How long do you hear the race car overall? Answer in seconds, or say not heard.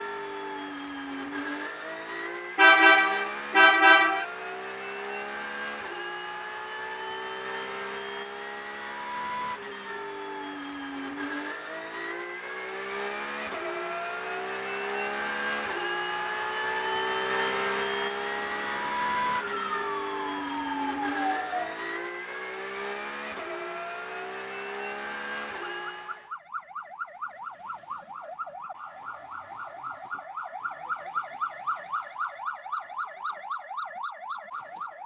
26 s.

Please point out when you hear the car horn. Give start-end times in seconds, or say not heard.
2.5-4.2.